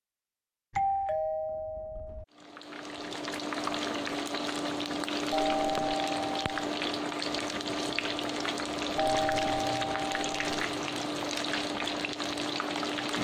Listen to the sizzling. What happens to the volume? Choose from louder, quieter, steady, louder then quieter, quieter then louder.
steady.